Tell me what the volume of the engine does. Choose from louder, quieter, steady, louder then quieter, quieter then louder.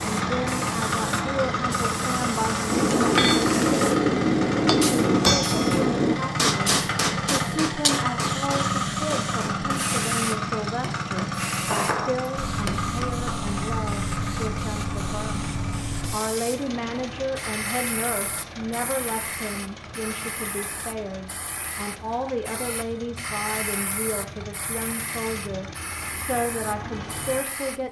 quieter.